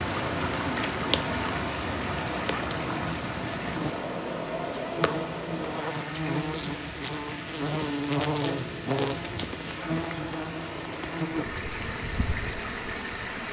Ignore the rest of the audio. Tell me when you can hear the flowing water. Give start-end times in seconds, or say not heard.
0.0-13.4.